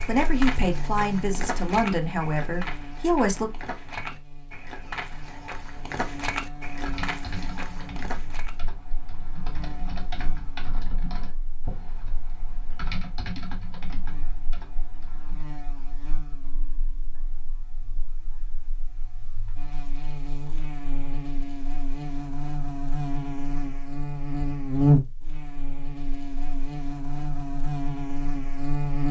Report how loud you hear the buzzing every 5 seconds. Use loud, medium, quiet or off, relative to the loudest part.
quiet, quiet, quiet, quiet, loud, medium.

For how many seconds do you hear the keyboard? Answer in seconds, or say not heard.
9 s.